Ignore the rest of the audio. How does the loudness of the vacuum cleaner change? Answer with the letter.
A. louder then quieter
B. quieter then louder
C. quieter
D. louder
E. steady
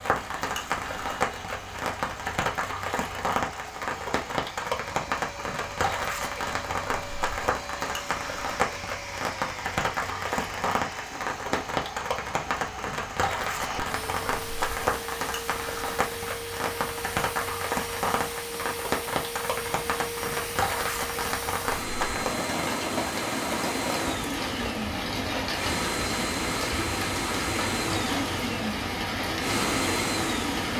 D.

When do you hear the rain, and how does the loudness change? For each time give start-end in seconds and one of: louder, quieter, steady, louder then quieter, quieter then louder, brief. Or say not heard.
0.0-30.7 steady.